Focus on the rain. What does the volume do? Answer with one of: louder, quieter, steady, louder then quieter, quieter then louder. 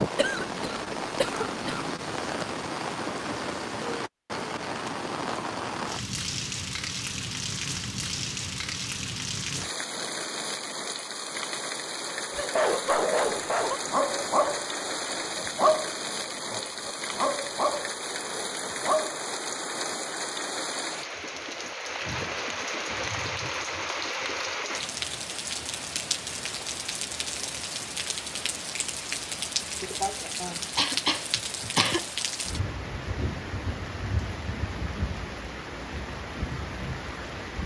steady.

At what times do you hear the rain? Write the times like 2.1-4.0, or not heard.
0.0-37.6.